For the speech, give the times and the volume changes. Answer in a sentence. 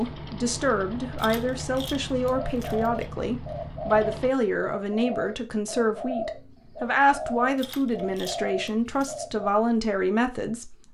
You can hear the speech from 0.0 to 10.8 s, at a steady volume.